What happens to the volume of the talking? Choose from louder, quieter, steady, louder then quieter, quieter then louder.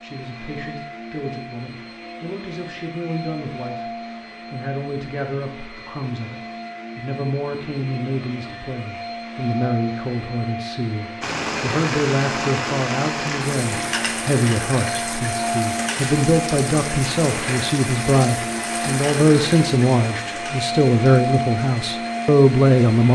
louder.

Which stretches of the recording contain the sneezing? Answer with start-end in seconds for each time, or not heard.
not heard.